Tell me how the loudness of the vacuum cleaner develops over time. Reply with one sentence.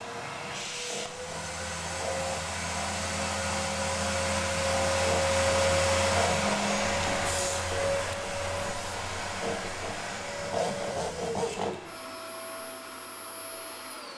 The loudness of the vacuum cleaner goes up, then down.